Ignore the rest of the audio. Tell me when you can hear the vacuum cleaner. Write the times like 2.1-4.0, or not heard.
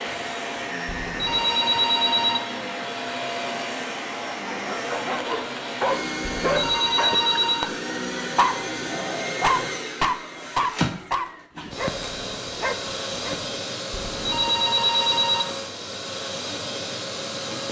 0.0-17.6.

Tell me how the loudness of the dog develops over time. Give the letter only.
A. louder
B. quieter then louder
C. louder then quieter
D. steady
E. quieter
C.